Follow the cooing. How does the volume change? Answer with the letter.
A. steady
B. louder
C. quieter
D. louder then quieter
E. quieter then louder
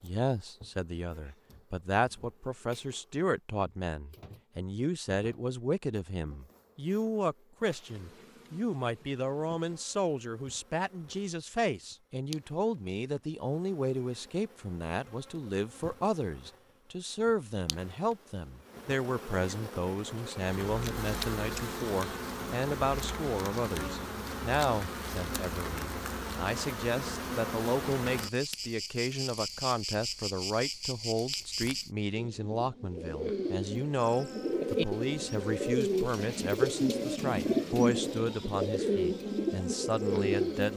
B.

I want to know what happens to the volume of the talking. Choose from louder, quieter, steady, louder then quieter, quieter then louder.
steady.